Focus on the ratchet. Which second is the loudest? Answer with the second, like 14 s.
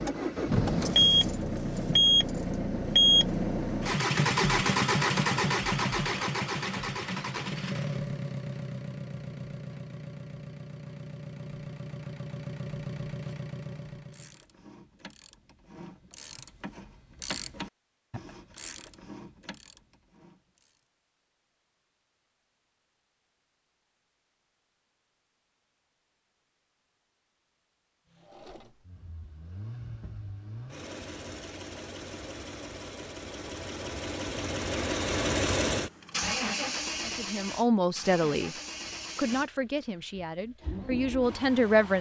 17 s.